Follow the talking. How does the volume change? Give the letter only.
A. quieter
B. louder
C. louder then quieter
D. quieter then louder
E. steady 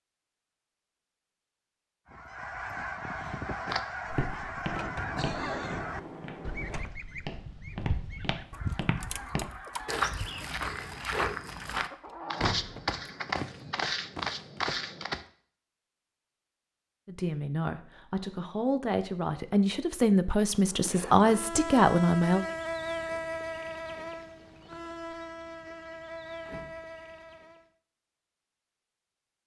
B.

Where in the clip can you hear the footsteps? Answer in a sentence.
You can hear the footsteps from 3.6 to 15.2 s.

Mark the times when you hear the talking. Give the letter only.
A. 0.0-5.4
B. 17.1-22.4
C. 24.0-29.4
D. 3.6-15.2
B.